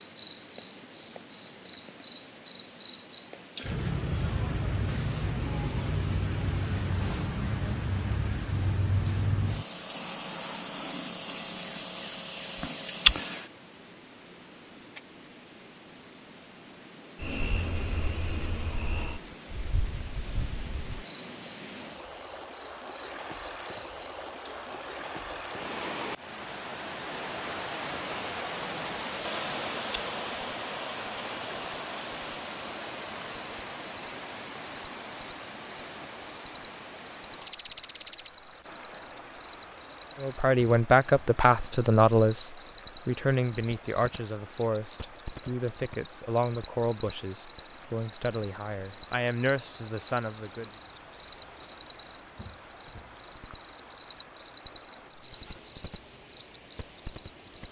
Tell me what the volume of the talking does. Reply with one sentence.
The loudness of the talking goes down.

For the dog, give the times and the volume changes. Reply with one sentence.
The dog can't be heard in this clip.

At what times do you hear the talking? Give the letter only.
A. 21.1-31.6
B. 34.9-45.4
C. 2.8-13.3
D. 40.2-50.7
D.